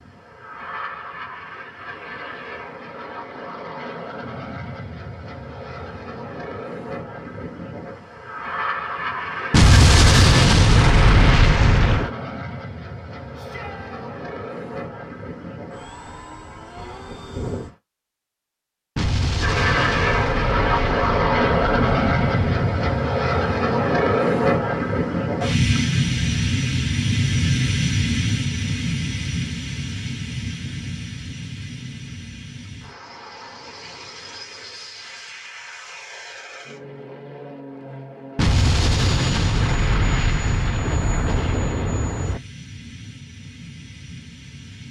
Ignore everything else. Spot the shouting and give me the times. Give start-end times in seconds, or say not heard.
13.3-14.1.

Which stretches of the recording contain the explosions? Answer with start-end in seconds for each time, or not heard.
9.5-12.1, 18.9-22.7, 38.4-42.4.